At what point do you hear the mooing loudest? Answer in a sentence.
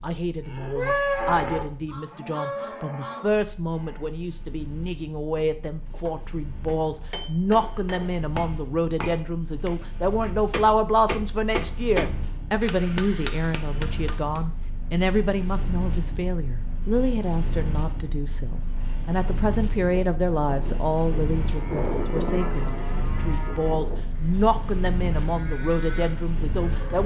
The volume of the mooing peaks at 1 second.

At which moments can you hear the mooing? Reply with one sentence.
You can hear the mooing from 0.0 to 4.1 s and from 19.9 to 27.0 s.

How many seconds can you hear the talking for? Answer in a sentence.
The talking can be heard for 27 seconds in total.